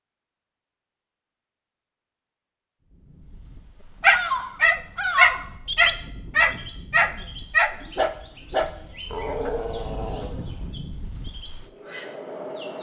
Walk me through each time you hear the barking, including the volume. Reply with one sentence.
You can hear the barking from 4.0 to 10.7 s, getting quieter.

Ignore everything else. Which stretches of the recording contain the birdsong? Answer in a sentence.
You can hear the birdsong from 4.0 to 12.7 s.